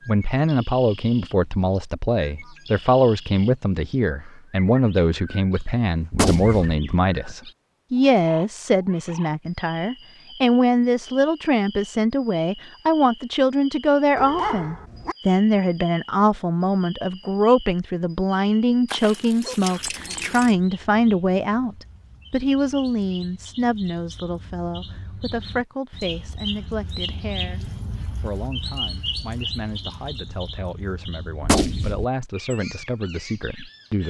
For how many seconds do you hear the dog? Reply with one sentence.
The dog can be heard for 3 seconds in total.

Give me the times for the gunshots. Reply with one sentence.
The gunshots can be heard from 6.1 to 6.8 s and from 31.4 to 32.0 s.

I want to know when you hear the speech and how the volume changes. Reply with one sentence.
You can hear the speech from 0.1 to 34.0 s, getting quieter.